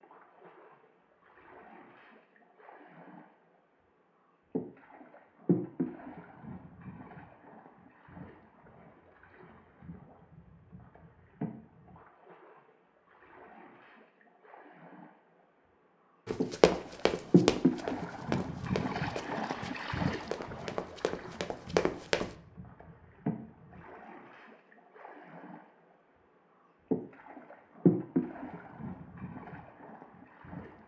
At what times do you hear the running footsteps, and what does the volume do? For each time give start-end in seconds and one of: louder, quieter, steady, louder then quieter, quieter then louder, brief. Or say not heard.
16.2-22.3 quieter then louder.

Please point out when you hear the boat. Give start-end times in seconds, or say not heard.
0.0-3.4, 4.5-15.2, 16.4-25.7, 26.9-30.8.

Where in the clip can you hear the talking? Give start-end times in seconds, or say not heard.
not heard.